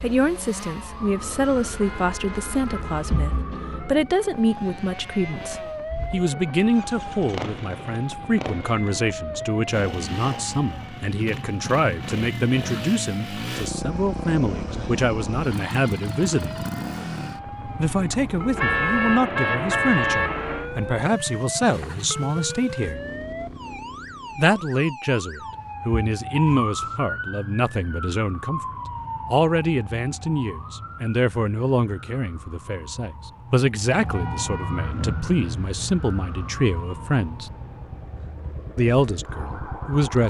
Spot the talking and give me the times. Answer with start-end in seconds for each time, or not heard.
0.0-16.6, 17.8-23.0, 24.4-28.6, 29.3-37.5, 38.8-40.2.